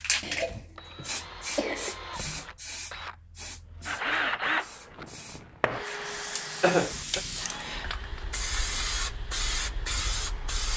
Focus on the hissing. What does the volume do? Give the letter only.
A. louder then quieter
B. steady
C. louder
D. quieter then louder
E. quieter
D.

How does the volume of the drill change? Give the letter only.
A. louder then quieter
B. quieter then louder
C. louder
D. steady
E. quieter
A.